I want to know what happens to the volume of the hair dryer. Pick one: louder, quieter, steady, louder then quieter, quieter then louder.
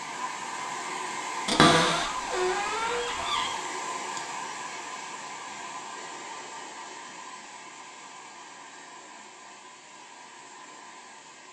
quieter.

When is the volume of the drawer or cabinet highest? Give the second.
2 s.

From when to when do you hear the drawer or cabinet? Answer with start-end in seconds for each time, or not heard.
1.4-3.5.